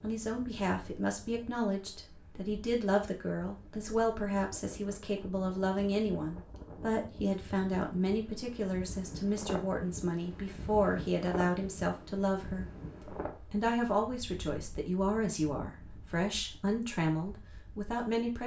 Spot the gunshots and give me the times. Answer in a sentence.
The gunshots can't be heard in this clip.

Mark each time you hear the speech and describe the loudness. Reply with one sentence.
The speech can be heard from 0.0 to 18.4 s, at a steady volume.